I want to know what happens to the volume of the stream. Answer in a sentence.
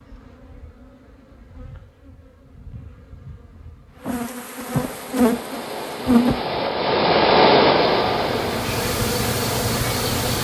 The loudness of the stream goes up, then down.